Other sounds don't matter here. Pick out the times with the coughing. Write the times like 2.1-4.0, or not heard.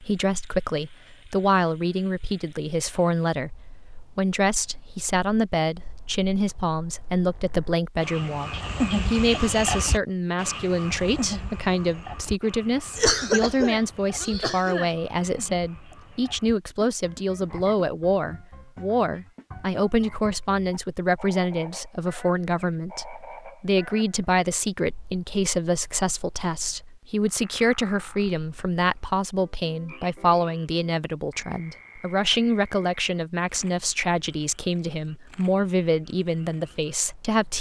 12.9-14.9.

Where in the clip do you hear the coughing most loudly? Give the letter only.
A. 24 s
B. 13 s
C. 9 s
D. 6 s
B.